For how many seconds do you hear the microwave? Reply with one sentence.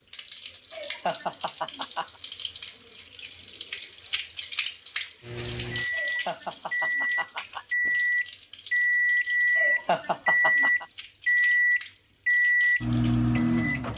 The microwave can be heard for 9 seconds in total.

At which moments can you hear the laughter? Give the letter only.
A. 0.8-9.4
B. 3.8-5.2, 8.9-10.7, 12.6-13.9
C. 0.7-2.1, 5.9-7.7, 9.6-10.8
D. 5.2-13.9
C.